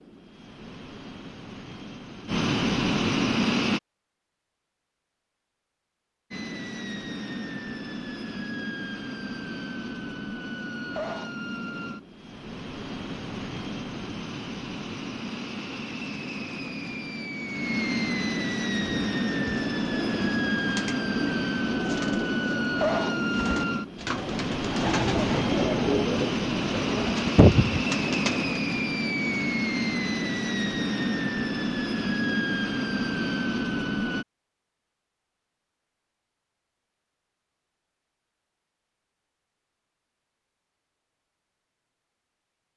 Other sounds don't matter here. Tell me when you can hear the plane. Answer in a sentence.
You can hear the plane from 0.0 to 3.8 s and from 6.3 to 34.2 s.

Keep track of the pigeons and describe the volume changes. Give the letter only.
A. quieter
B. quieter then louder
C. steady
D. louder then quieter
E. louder
E.